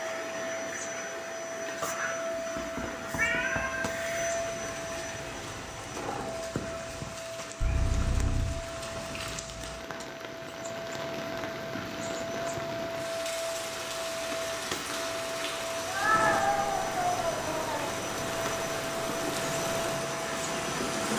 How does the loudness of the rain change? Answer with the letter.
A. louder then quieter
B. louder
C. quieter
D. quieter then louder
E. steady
B.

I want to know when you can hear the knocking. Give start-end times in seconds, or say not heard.
2.4-3.9.